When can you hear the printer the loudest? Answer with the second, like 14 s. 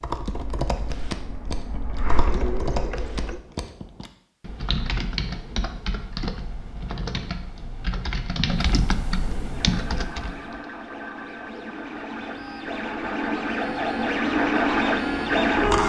15 s.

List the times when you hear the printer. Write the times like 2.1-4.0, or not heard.
0.2-3.4, 9.5-15.8.